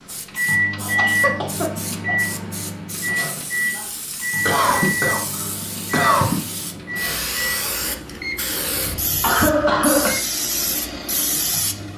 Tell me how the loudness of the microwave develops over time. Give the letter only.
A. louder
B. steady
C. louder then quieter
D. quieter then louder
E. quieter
E.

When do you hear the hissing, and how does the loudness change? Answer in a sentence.
The hissing can be heard from 0.0 to 11.9 s, getting louder.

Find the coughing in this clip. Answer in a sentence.
You can hear the coughing from 0.8 to 2.1 s, from 4.5 to 6.4 s and from 8.7 to 10.2 s.